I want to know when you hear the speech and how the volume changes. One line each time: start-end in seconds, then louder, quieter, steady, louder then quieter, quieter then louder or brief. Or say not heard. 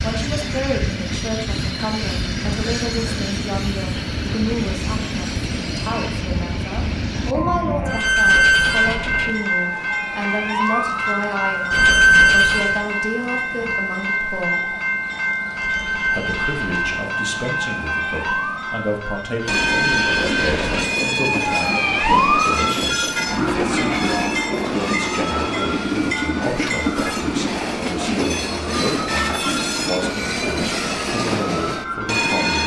0.0-14.8 steady
15.9-32.6 steady.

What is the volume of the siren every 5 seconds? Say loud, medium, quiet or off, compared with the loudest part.
off, loud, loud, medium, medium, quiet, quiet.